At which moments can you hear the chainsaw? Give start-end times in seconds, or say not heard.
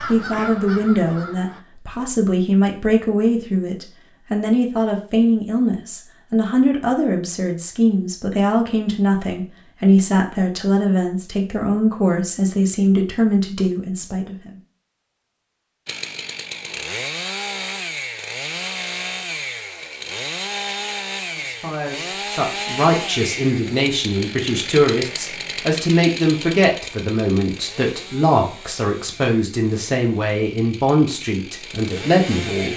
15.8-32.7.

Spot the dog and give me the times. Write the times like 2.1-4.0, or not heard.
not heard.